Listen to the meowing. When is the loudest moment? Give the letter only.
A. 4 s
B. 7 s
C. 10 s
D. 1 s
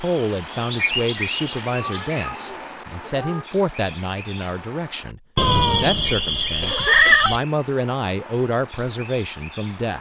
B.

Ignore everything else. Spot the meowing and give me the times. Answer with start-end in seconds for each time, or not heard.
1.8-3.5, 5.3-7.4.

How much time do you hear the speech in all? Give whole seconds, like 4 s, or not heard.
10 s.